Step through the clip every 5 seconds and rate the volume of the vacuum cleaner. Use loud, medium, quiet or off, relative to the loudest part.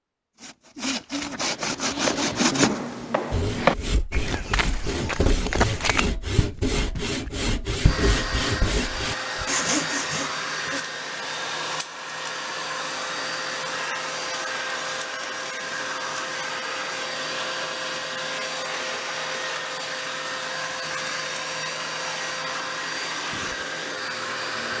off, loud, loud, loud, loud.